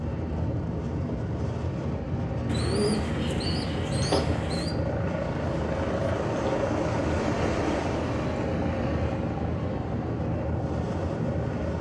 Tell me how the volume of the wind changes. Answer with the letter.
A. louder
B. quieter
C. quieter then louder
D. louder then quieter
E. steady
E.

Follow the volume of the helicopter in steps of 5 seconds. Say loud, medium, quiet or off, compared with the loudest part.
medium, loud, medium.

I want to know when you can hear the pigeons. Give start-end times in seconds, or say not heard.
2.5-4.8.